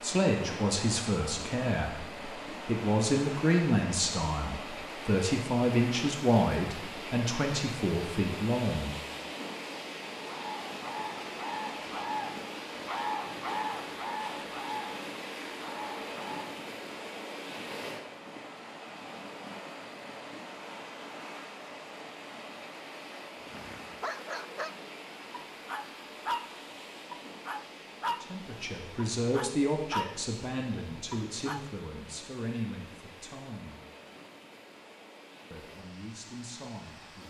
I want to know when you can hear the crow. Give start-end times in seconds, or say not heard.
10.2-16.5.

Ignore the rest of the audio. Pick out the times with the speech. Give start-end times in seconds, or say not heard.
0.0-8.9, 28.2-33.8, 35.5-37.2.